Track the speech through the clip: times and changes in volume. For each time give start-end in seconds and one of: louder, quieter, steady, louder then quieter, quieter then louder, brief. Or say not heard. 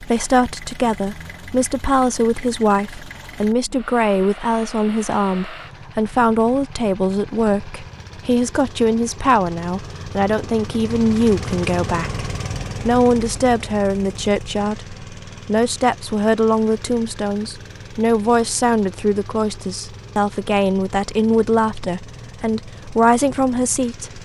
0.0-24.2 steady.